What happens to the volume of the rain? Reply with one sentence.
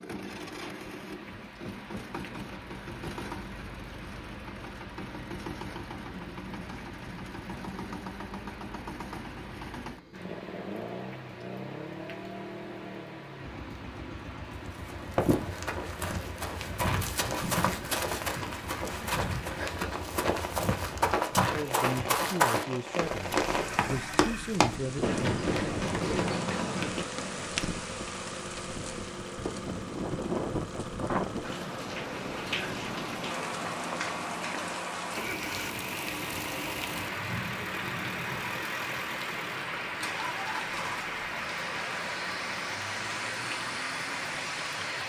The loudness of the rain goes up.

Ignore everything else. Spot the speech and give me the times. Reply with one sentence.
The speech can be heard from 21.4 to 25.1 s.